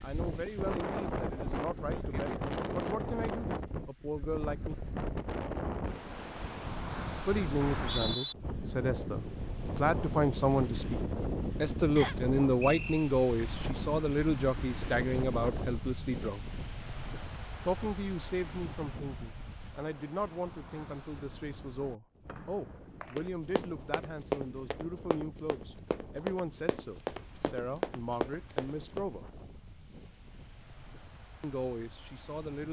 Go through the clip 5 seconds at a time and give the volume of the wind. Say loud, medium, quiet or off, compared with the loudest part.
loud, loud, loud, medium, quiet, quiet, quiet.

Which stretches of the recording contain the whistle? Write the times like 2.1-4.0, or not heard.
7.6-8.3, 11.9-13.1, 22.2-23.2.